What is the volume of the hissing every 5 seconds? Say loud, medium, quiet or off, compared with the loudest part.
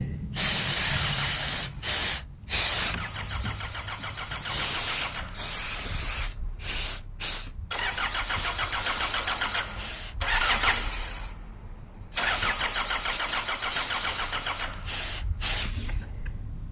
loud, medium, medium, medium.